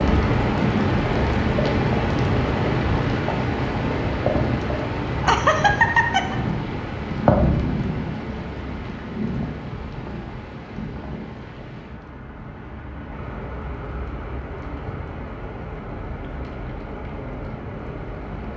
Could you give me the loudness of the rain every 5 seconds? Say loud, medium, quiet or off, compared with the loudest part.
loud, loud, quiet, quiet.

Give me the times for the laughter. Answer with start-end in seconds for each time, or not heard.
5.2-6.3.